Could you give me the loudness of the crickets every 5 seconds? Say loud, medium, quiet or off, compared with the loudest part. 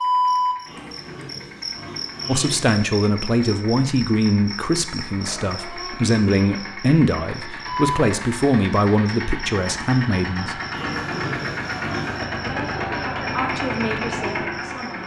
loud, medium, quiet.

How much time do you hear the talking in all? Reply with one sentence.
The talking can be heard for 11 seconds in total.